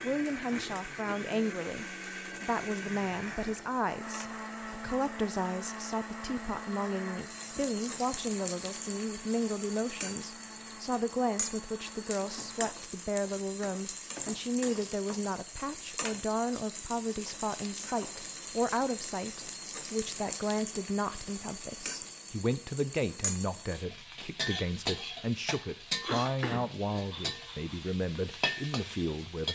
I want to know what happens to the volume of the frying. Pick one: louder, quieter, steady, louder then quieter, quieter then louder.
louder.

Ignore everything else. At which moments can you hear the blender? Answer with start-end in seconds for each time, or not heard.
0.0-12.7.